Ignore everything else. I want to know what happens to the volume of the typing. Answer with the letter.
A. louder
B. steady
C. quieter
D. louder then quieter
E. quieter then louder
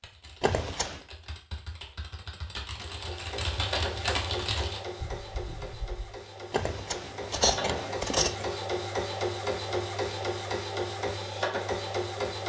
D.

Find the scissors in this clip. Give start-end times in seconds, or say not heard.
0.4-1.0, 6.5-8.4.